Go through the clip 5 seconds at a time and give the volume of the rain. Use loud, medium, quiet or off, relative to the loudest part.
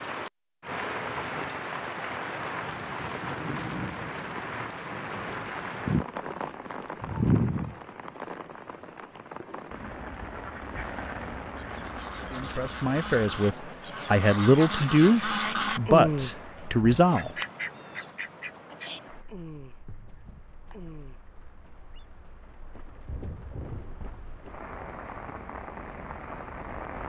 loud, loud, medium, quiet, quiet, medium.